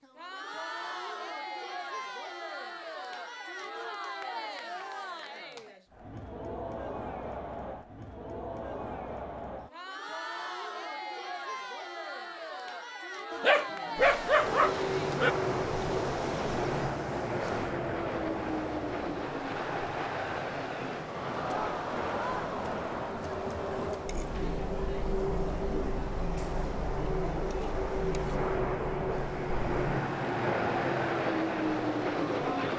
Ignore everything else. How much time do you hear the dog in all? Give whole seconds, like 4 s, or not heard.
2 s.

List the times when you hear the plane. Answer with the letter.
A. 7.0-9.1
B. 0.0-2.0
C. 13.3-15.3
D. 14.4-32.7
D.